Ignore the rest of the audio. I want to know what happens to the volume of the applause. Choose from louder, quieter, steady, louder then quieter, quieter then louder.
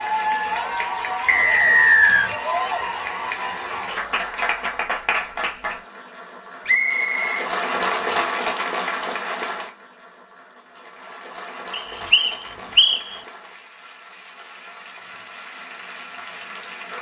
quieter.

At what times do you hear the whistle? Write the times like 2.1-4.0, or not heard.
1.2-2.3, 6.7-8.2, 11.7-13.0.